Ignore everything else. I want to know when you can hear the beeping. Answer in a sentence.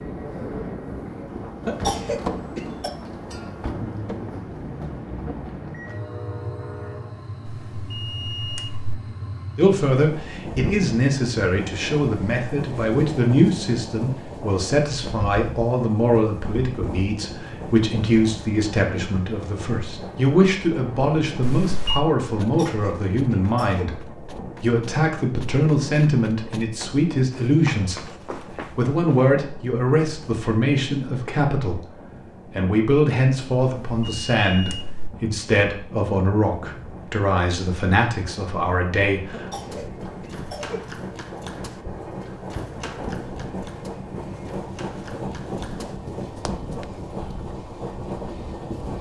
The beeping can be heard from 7.5 to 8.9 s, from 21.4 to 22.1 s and from 33.8 to 35.1 s.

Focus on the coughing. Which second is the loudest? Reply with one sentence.
The volume of the coughing peaks at 2 seconds.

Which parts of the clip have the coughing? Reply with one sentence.
You can hear the coughing from 1.6 to 2.9 s, from 22.4 to 23.9 s and from 39.3 to 40.9 s.